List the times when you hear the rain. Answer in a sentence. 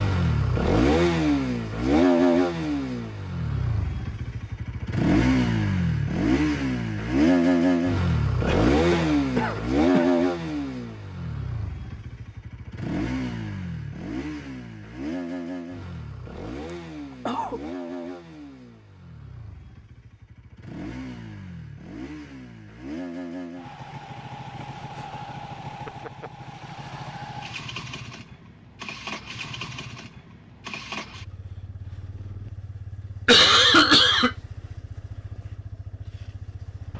You can't hear the rain here.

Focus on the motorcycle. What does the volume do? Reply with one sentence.
The volume of the motorcycle goes down.